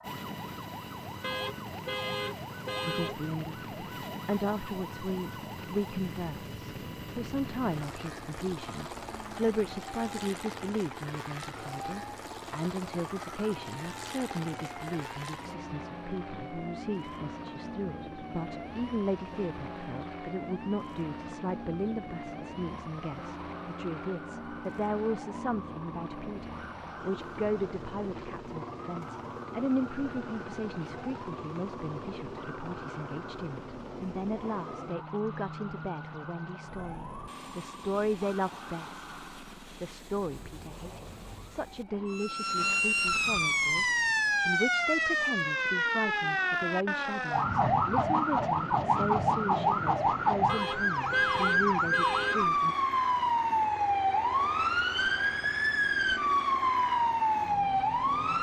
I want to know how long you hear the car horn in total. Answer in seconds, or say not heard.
4 s.